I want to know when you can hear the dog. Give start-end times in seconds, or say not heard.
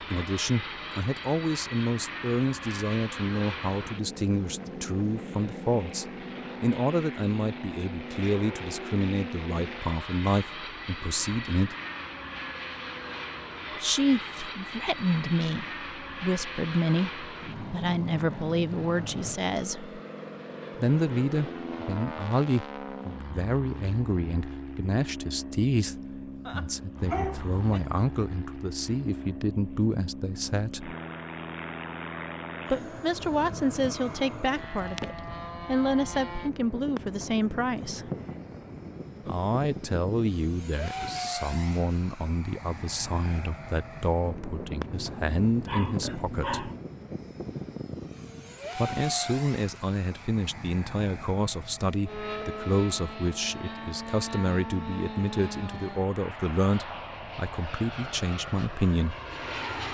26.4-27.8, 44.9-46.9.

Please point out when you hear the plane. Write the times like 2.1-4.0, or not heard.
0.0-59.8.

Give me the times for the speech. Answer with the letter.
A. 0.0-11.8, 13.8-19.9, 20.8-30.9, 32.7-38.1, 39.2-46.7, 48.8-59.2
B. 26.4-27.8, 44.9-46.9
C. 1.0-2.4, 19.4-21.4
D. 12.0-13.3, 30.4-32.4
A.